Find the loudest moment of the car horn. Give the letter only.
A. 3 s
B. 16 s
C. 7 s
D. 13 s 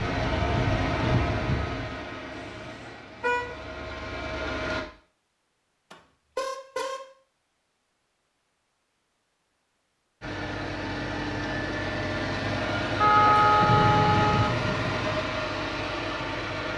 D.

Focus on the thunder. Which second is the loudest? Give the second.
14 s.